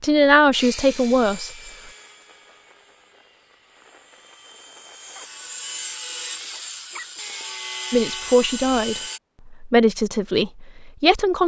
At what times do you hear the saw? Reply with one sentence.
The saw can be heard from 0.5 to 9.2 s.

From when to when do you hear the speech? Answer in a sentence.
You can hear the speech from 0.0 to 1.5 s and from 7.9 to 11.4 s.